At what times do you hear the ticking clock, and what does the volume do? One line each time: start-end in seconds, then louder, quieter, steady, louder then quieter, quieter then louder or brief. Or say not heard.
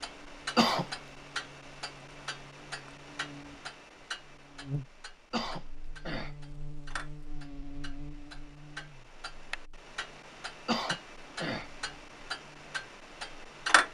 0.0-13.8 quieter then louder.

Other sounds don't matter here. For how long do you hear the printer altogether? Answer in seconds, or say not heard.
not heard.